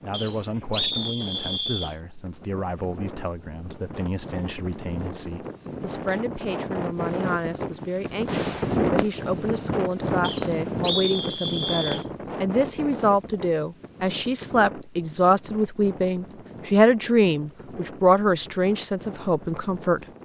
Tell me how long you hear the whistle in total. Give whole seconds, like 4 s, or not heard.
4 s.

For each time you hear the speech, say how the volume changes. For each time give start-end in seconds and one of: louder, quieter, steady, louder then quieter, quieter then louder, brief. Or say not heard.
0.0-20.1 louder.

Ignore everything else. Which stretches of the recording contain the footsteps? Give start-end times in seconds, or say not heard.
not heard.